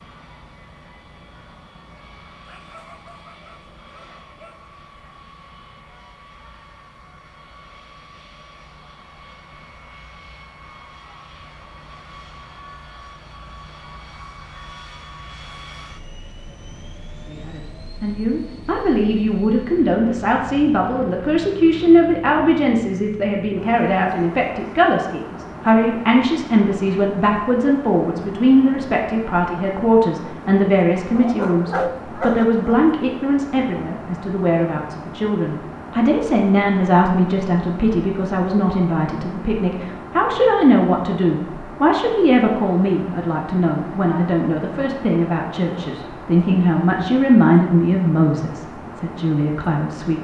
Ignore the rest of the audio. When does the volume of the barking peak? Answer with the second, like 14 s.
32 s.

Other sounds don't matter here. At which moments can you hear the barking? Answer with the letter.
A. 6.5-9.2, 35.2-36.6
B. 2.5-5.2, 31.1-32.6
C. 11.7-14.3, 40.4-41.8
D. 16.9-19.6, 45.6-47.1
B.